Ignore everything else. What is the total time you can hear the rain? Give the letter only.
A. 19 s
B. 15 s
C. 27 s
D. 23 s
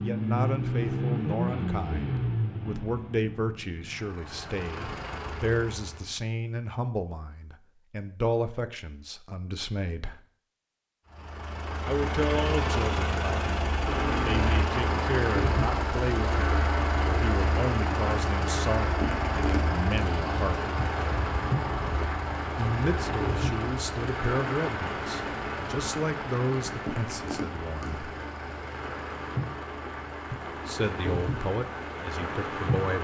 A.